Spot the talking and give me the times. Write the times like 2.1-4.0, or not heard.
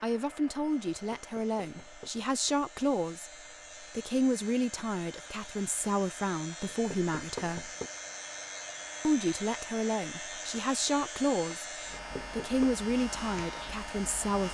0.0-7.7, 9.0-14.4.